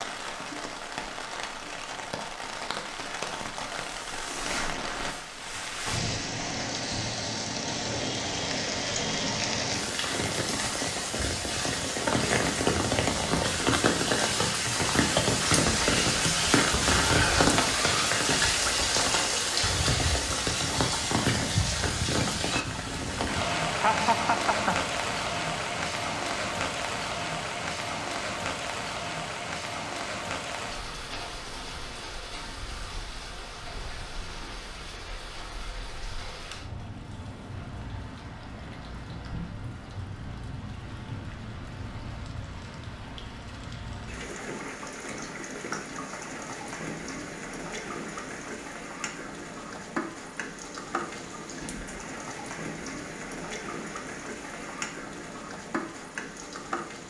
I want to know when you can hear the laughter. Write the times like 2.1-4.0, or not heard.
23.8-24.9.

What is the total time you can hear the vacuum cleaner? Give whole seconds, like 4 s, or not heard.
not heard.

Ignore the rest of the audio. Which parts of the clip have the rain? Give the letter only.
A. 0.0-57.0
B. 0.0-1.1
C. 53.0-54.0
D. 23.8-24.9
A.